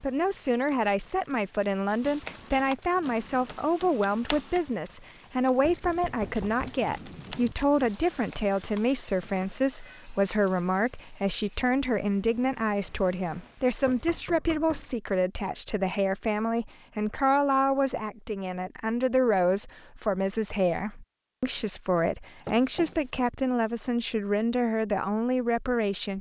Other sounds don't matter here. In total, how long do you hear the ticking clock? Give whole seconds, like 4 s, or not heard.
not heard.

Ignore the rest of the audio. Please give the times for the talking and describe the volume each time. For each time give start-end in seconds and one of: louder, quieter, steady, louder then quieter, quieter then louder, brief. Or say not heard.
0.0-26.1 steady.